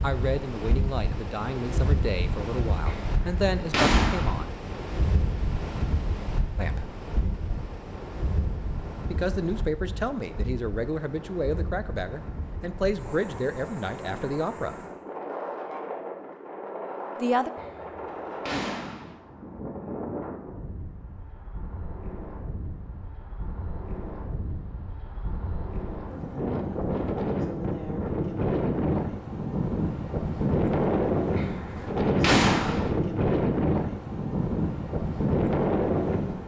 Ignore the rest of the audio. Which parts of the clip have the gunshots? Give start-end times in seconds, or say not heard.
2.9-4.4, 17.6-19.1, 31.4-32.9.